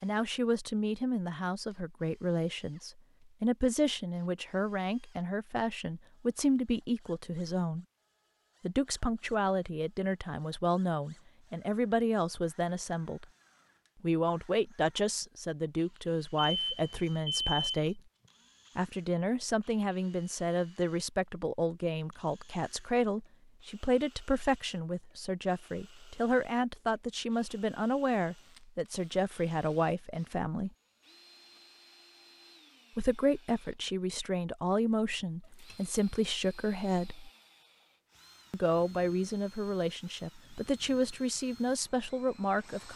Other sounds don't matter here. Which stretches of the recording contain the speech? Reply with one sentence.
You can hear the speech from 0.0 to 7.8 s, from 8.6 to 13.2 s, from 14.0 to 18.0 s, from 18.8 to 30.7 s, from 33.0 to 37.3 s and from 38.5 to 42.9 s.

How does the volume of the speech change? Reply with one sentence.
The volume of the speech stays about the same.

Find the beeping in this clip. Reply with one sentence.
You can hear the beeping from 16.4 to 17.9 s and from 35.4 to 36.0 s.